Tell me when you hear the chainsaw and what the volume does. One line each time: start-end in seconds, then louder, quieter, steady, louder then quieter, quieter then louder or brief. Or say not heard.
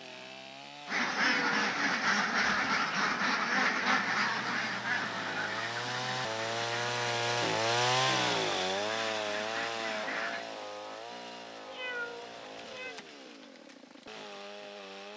0.0-15.1 louder then quieter.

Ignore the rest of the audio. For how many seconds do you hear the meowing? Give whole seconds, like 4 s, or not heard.
2 s.